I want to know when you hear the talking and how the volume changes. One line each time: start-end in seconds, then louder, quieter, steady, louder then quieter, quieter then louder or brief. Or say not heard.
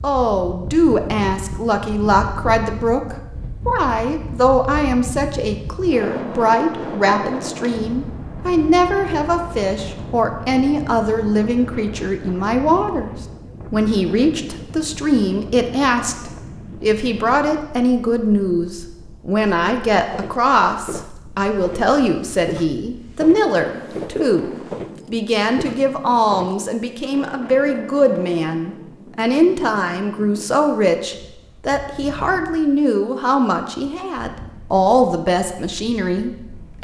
0.0-36.7 steady.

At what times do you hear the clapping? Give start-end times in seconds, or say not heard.
not heard.